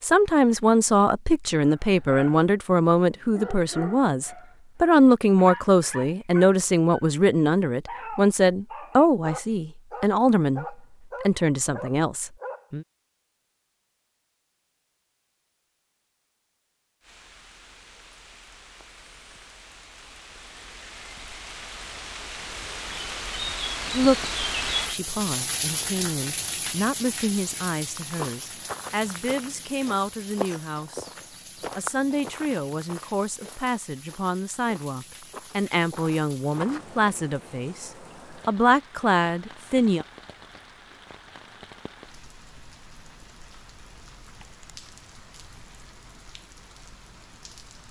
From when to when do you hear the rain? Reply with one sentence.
You can hear the rain from 17.0 to 47.8 s.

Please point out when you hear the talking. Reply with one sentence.
The talking can be heard from 0.0 to 12.8 s, from 23.9 to 31.1 s and from 31.8 to 40.0 s.